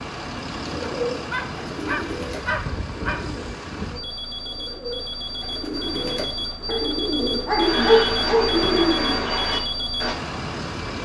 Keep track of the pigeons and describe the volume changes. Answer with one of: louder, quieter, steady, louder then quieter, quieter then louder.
quieter then louder.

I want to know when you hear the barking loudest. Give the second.
8 s.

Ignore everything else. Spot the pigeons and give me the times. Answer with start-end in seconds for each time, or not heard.
0.7-10.2.